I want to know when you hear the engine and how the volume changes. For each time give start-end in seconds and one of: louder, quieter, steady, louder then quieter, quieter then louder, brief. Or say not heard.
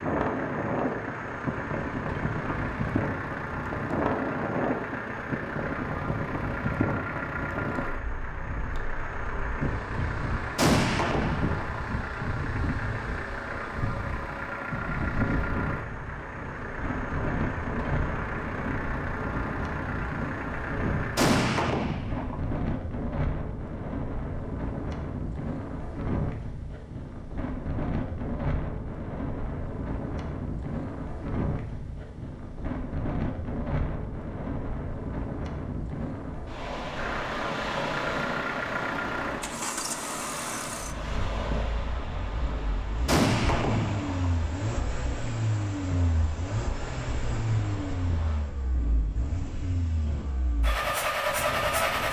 0.0-21.6 steady
37.0-52.0 quieter then louder.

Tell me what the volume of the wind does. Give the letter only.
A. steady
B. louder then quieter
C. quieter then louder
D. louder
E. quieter
E.